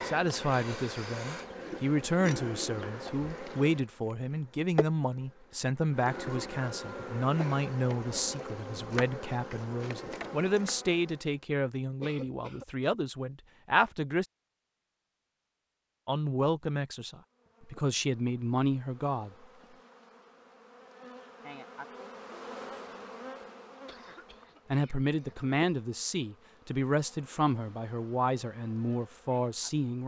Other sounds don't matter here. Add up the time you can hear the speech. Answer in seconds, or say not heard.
23 s.